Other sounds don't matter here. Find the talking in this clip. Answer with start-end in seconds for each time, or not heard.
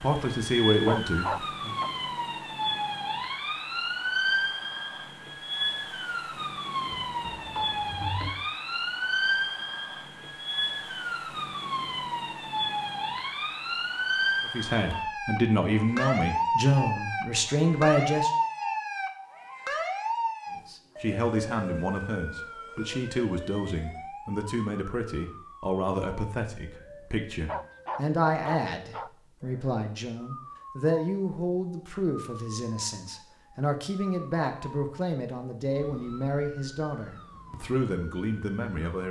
0.0-1.7, 14.4-18.3, 20.6-39.0.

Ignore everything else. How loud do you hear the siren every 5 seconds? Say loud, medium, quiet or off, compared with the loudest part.
loud, loud, loud, loud, medium, quiet, quiet, quiet.